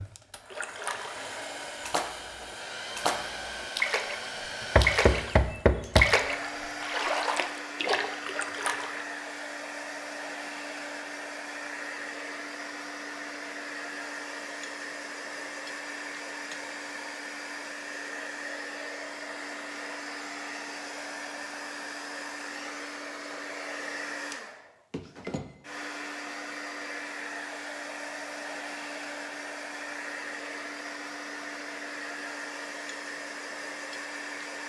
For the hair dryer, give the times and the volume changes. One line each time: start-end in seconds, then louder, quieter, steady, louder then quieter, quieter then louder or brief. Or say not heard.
0.0-34.6 steady.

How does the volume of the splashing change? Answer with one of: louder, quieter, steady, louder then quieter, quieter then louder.
louder then quieter.